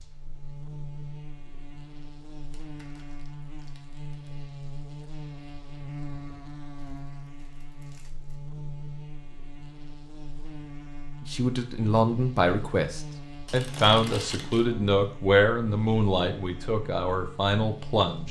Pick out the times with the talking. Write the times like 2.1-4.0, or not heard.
11.2-18.2.